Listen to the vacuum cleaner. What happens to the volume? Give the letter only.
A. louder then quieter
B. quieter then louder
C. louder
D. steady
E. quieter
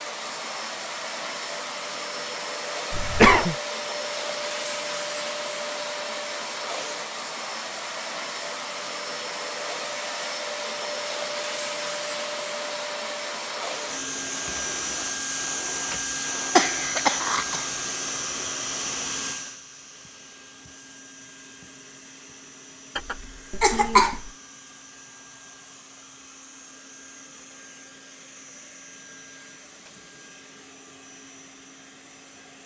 E.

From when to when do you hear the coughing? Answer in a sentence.
The coughing can be heard from 2.9 to 3.5 s, from 16.6 to 17.6 s and from 22.9 to 24.3 s.